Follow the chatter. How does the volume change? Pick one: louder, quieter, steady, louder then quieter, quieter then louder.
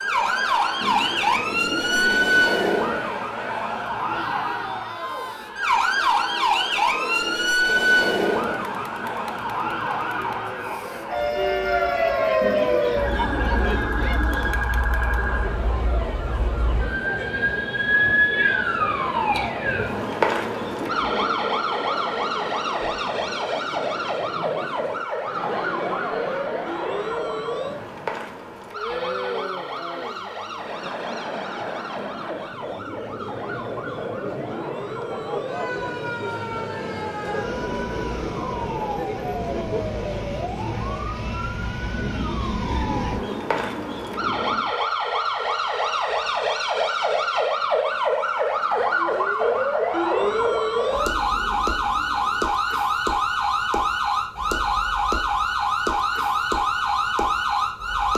steady.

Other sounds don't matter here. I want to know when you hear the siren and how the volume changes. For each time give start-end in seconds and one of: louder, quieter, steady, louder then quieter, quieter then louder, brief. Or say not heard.
0.0-58.1 quieter then louder.